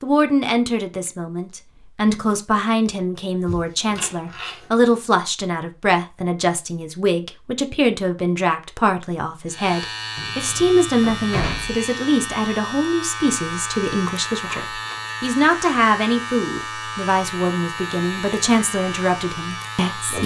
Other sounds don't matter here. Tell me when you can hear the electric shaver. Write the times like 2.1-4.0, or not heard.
9.4-20.2.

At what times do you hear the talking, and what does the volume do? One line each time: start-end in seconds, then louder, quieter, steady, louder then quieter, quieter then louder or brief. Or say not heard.
0.0-20.2 steady.